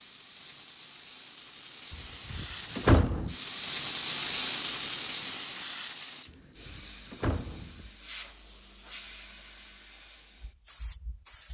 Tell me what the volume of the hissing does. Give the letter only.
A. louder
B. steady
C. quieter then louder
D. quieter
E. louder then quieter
E.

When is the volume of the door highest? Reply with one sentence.
The loudest moment of the door is at 3 seconds.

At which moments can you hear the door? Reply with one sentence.
You can hear the door from 1.9 to 3.4 s and from 6.2 to 7.9 s.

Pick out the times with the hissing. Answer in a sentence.
You can hear the hissing from 0.0 to 11.4 s.